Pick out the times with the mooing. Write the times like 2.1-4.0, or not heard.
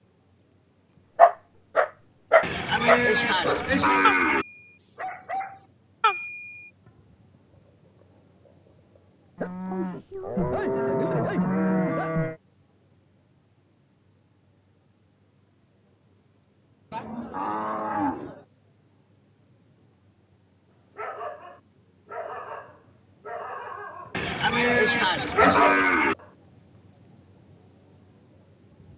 2.4-4.5, 9.3-12.3, 16.9-18.4, 24.1-26.1.